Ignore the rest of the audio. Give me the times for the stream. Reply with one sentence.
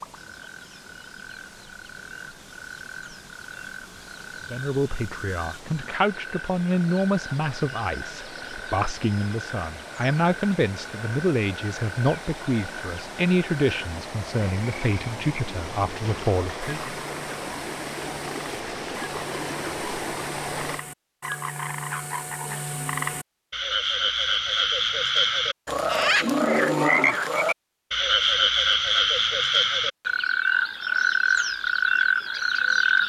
The stream can be heard from 0.0 to 20.9 s.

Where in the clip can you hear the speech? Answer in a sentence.
The speech can be heard from 4.5 to 16.9 s.